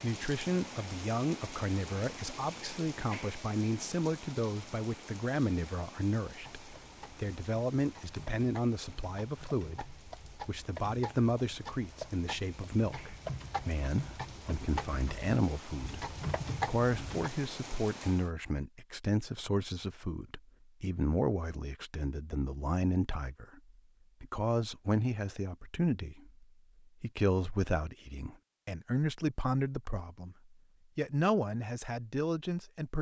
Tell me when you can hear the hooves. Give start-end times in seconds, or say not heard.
6.4-17.3.